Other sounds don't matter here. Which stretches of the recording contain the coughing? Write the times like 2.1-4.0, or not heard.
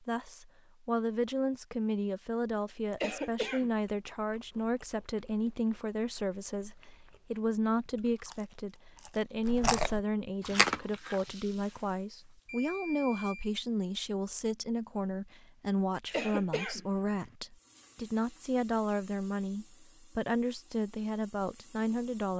3.0-3.7, 16.1-17.3.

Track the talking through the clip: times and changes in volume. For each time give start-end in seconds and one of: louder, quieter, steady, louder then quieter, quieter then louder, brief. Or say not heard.
0.0-22.3 steady.